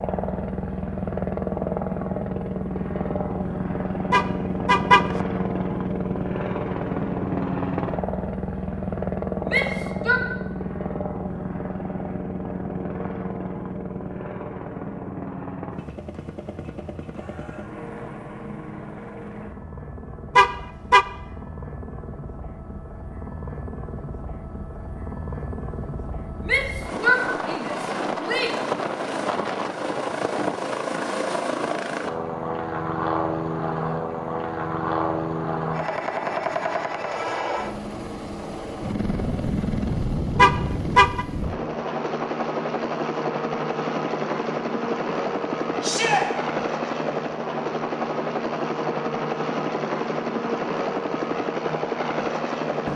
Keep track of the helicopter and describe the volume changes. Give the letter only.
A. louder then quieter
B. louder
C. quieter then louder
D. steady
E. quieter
C.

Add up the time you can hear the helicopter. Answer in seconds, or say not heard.
53 s.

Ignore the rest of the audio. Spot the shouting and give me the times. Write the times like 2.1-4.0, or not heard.
9.4-10.2, 26.4-28.6, 45.8-46.2.